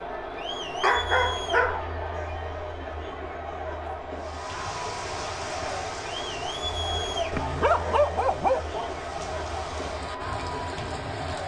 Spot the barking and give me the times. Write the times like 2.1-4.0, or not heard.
0.8-1.8, 7.3-8.9.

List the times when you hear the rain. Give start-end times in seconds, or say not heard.
4.2-11.4.